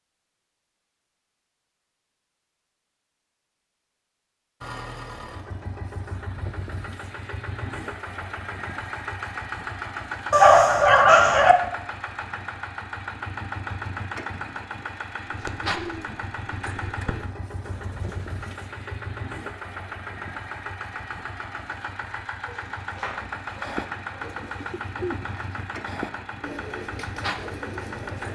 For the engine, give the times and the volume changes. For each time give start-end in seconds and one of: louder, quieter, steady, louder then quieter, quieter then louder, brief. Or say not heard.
4.6-28.2 steady.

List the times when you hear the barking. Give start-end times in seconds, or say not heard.
10.3-11.6, 22.4-24.8.